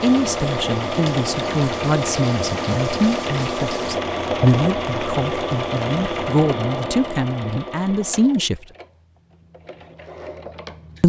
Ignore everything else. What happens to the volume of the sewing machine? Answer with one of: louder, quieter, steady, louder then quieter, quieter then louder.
quieter.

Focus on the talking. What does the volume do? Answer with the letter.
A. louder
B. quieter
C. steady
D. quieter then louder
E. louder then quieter
C.